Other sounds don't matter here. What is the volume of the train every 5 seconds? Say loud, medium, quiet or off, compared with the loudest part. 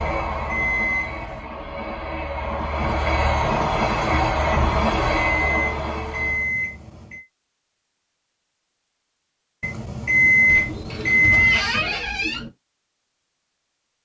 loud, loud, off.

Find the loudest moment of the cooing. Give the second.
12 s.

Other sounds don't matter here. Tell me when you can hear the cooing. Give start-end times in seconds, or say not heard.
10.4-12.5.